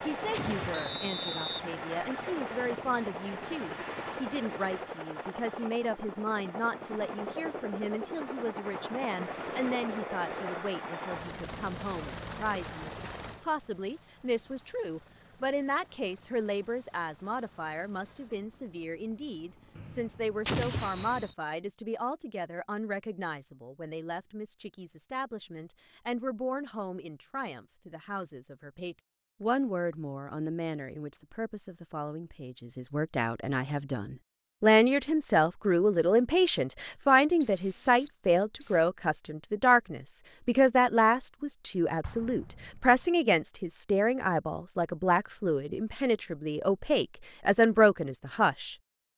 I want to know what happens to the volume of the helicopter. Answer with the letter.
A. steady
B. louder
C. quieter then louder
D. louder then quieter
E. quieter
E.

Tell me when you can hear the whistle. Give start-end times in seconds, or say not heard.
0.7-1.6, 19.8-21.4, 37.4-38.9.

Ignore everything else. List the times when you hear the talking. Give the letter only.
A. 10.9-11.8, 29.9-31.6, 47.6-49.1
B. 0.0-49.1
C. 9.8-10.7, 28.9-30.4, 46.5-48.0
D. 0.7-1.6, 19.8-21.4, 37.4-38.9
B.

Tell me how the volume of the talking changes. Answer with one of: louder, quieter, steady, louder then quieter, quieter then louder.
louder.